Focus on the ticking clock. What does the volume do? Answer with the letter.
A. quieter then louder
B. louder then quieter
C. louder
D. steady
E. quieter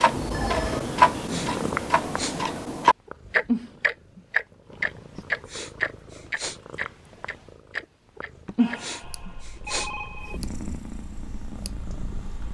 E.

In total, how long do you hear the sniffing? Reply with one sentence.
You can hear the sniffing for 4 seconds altogether.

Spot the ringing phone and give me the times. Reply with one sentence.
The ringing phone can be heard from 0.1 to 0.8 s and from 8.6 to 10.4 s.